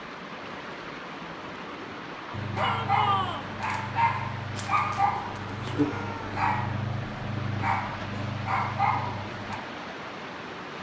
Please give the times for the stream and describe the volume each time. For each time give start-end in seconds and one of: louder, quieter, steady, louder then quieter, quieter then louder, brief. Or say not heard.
0.0-10.7 steady.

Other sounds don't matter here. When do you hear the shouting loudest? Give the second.
3 s.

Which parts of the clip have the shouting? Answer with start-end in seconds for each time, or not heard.
2.5-3.5, 5.7-6.3.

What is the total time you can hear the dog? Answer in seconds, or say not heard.
7 s.